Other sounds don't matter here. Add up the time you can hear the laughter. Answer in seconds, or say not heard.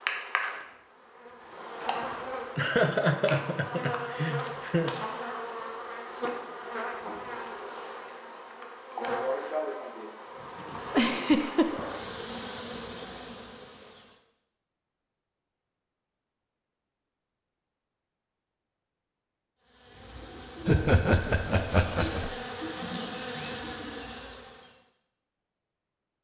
5 s.